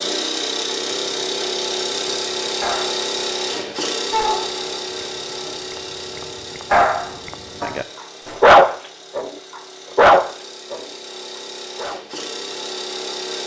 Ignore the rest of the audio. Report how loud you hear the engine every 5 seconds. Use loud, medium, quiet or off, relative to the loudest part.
loud, medium, medium.